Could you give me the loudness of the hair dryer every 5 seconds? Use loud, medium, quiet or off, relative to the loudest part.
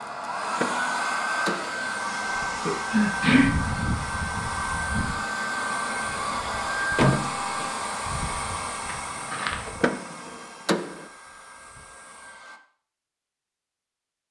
loud, loud, quiet.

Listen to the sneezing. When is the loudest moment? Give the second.
3 s.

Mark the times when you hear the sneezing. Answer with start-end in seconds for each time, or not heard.
2.6-3.5, 8.8-9.6.